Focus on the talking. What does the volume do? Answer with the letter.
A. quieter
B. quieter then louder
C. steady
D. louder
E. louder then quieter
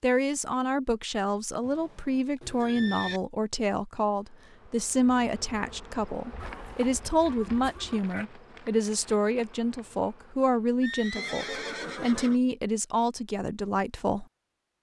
C.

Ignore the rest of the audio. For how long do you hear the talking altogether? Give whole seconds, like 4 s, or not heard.
14 s.